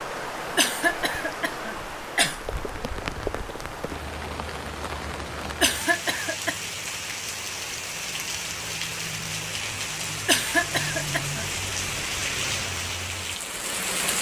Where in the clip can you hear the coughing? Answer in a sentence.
You can hear the coughing from 0.6 to 2.4 s, from 5.6 to 6.5 s and from 10.2 to 11.4 s.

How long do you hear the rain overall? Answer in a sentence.
The rain can be heard for 14 seconds in total.